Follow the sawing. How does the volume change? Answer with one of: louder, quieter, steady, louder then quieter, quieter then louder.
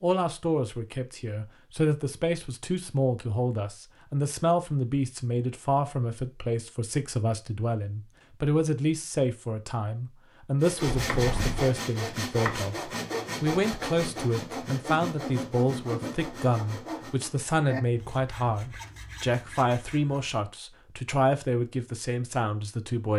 quieter.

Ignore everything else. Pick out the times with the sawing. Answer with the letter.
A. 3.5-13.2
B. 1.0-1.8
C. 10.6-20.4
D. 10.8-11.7
C.